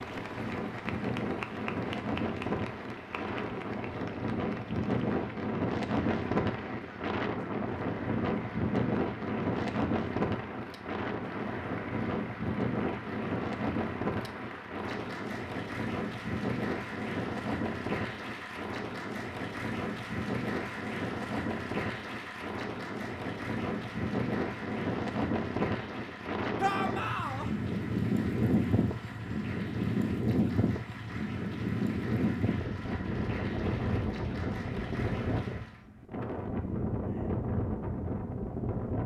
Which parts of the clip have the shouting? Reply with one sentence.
You can hear the shouting from 26.6 to 27.5 s.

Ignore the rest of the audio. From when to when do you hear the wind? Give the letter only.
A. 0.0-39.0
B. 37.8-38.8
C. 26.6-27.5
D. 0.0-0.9
A.